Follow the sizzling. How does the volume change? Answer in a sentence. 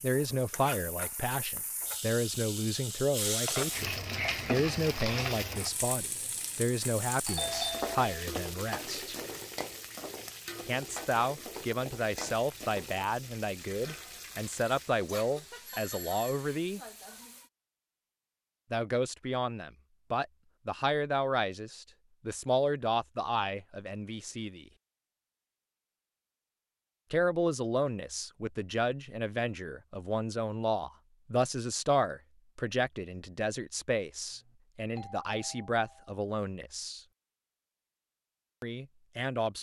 The loudness of the sizzling goes down.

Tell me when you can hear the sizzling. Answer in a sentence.
You can hear the sizzling from 0.0 to 17.5 s.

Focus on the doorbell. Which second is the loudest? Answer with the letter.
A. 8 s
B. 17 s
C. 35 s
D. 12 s
A.